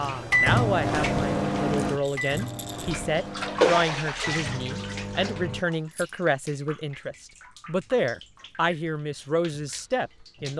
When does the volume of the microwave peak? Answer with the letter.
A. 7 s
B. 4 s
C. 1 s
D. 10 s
C.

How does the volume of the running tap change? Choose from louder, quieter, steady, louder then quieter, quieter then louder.
louder then quieter.